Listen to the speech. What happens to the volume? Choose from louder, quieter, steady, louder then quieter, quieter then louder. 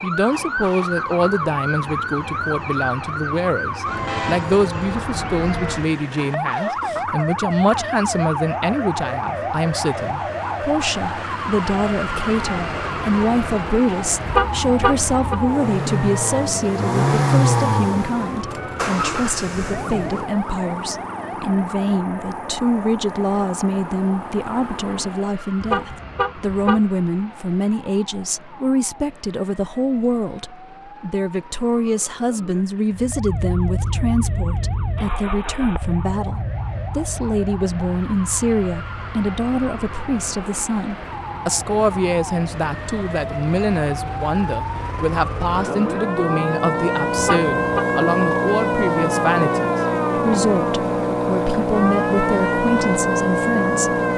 steady.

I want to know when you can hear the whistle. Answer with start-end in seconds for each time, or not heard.
not heard.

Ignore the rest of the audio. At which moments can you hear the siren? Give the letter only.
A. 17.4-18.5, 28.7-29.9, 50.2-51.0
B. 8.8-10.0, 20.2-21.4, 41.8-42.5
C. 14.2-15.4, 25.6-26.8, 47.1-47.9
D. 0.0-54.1
D.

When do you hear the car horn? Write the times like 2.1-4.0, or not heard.
14.2-15.4, 25.6-26.8, 47.1-47.9.